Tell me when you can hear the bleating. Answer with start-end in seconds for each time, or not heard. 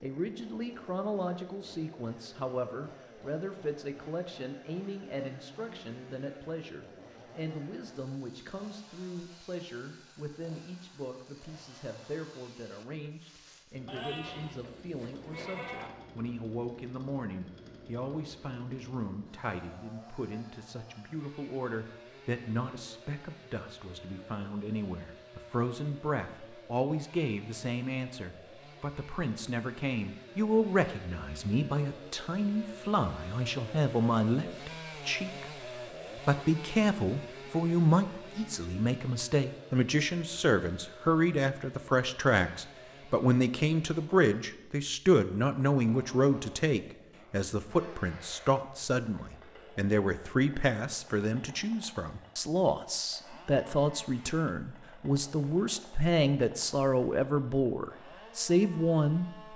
13.8-15.9.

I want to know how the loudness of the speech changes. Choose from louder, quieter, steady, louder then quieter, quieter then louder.
louder.